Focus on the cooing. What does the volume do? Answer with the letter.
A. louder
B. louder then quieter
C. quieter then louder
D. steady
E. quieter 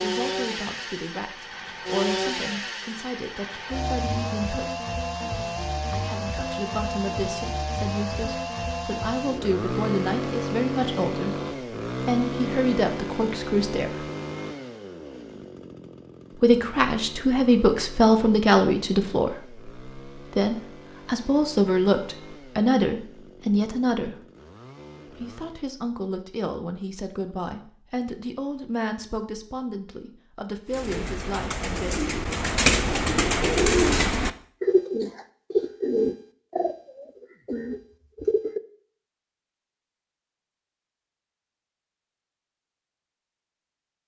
B.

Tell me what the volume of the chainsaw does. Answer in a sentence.
The volume of the chainsaw goes down.